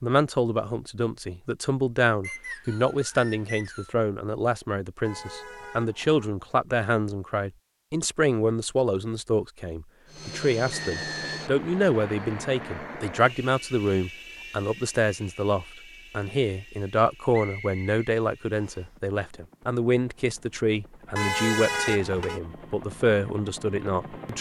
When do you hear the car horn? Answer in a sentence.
The car horn can be heard from 5.0 to 6.2 s and from 21.1 to 22.4 s.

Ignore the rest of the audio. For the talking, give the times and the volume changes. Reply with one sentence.
You can hear the talking from 0.0 to 24.3 s, at a steady volume.